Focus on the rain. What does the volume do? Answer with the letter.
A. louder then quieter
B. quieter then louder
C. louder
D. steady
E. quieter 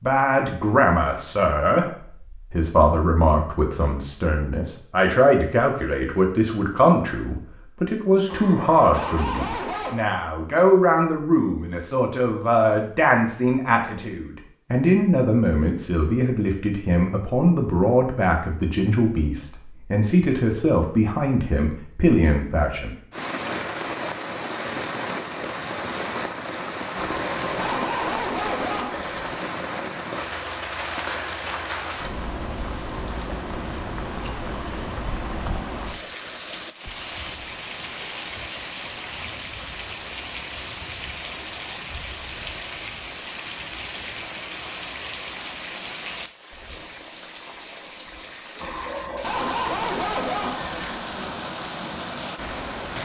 D.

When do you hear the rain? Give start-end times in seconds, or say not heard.
23.1-52.9.